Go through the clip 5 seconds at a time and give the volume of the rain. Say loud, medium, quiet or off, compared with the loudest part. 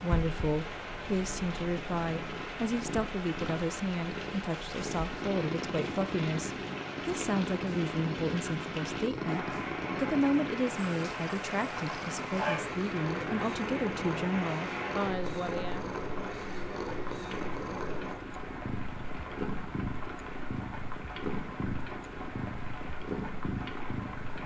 loud, loud, loud, medium, medium.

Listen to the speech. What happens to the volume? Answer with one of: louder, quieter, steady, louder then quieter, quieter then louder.
steady.